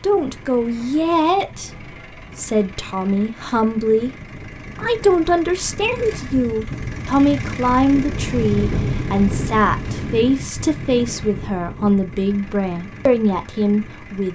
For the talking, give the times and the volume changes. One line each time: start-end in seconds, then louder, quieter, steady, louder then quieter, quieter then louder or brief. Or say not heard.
0.0-4.1 quieter then louder
4.8-14.2 steady.